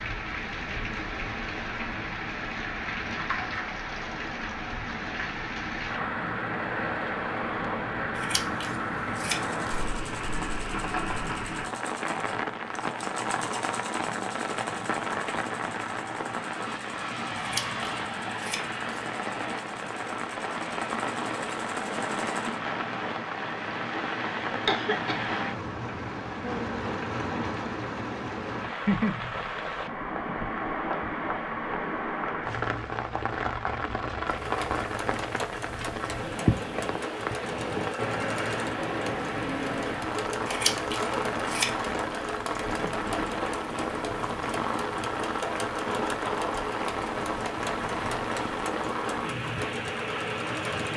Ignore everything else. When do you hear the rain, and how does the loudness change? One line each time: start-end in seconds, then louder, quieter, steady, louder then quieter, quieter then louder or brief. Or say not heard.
0.0-50.9 steady.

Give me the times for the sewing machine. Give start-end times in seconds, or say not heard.
9.3-22.6, 34.2-50.9.